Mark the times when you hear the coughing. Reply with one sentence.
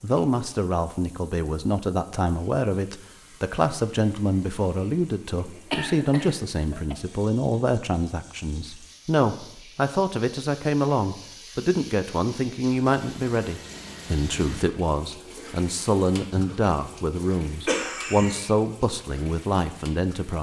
You can hear the coughing from 5.5 to 7.0 s and from 17.6 to 18.6 s.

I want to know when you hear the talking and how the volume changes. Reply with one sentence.
The talking can be heard from 0.0 to 20.3 s, at a steady volume.